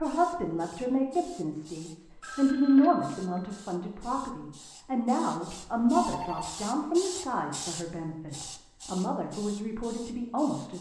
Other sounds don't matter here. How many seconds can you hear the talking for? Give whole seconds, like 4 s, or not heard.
11 s.